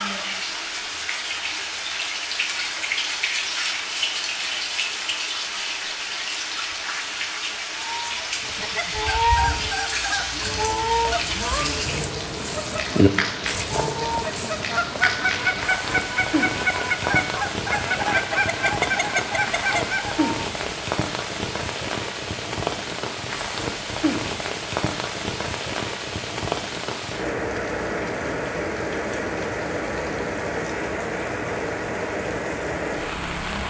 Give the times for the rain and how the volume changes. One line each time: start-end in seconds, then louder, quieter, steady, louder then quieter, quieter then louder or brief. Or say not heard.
0.0-33.6 steady.